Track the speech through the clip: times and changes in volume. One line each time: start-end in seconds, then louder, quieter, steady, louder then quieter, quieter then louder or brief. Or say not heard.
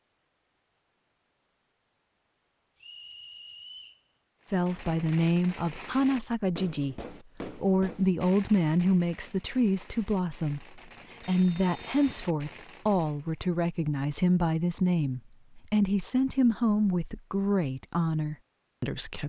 4.5-19.2 steady.